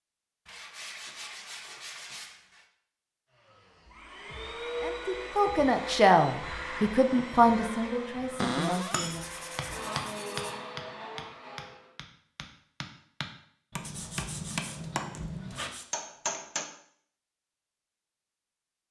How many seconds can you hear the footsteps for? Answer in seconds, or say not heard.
not heard.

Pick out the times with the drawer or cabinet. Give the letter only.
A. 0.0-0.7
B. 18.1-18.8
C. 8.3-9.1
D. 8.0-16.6
C.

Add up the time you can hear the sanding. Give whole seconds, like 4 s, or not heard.
6 s.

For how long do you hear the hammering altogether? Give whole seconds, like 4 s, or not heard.
9 s.